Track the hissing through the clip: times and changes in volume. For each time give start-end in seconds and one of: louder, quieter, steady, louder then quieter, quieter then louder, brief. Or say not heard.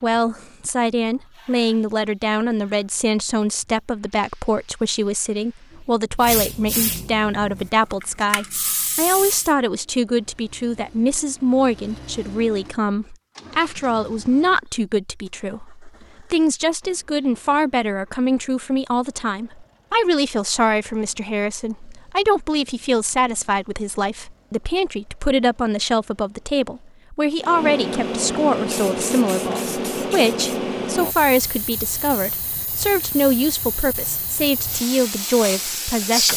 0.0-9.6 quieter then louder
27.4-36.3 quieter then louder.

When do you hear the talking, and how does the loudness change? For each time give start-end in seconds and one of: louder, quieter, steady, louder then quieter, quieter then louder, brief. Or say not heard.
0.0-36.3 steady.